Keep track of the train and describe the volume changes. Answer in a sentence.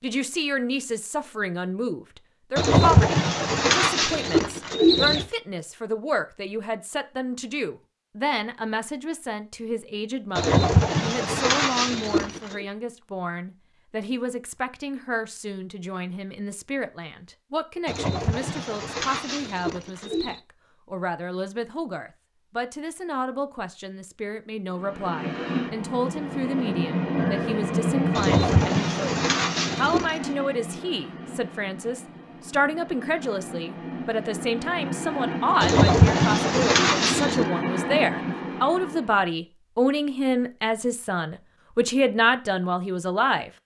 The loudness of the train goes down, then up.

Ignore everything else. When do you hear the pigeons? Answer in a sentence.
The pigeons can be heard from 2.5 to 5.2 s, from 10.3 to 12.7 s, from 17.9 to 20.4 s, from 28.1 to 30.2 s and from 35.6 to 37.5 s.